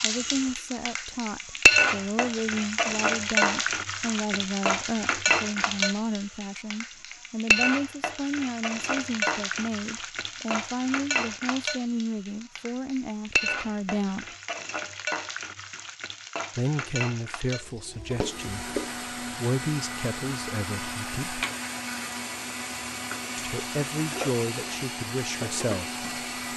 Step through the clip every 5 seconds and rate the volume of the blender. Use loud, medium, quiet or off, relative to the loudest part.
off, off, off, loud, loud, loud.